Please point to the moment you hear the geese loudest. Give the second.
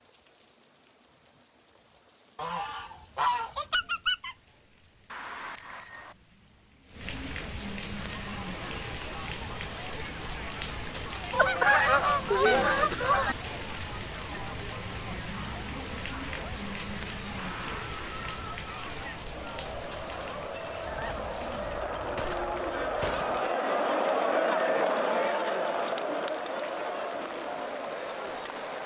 12 s.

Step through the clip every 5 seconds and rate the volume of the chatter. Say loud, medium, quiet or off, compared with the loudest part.
off, quiet, quiet, quiet, loud, loud.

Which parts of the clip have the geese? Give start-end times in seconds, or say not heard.
2.4-4.3, 11.3-13.3, 20.9-23.5.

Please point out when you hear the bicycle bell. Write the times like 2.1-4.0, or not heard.
5.1-6.2, 17.4-18.4.